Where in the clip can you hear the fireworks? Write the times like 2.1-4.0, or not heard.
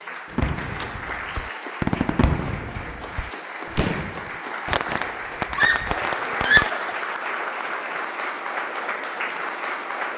0.2-6.8.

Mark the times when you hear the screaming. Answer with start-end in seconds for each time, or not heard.
5.5-7.0.